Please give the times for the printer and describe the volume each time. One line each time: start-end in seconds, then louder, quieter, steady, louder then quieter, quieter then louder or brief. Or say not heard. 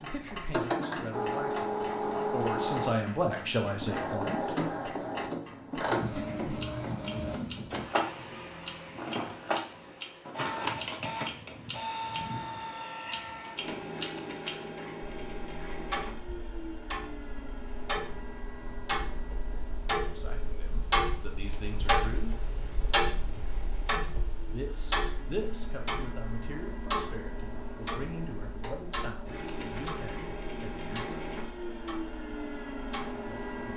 0.0-33.7 quieter then louder.